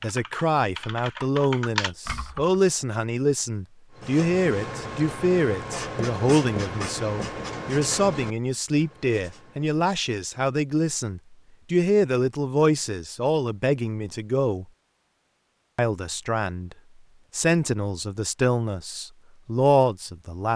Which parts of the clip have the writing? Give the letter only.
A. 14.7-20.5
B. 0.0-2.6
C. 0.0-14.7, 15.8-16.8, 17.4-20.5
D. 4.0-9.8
D.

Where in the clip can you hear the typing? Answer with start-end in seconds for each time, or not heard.
0.0-2.6.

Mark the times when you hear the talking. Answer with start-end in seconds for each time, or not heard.
0.0-14.7, 15.8-16.8, 17.4-20.5.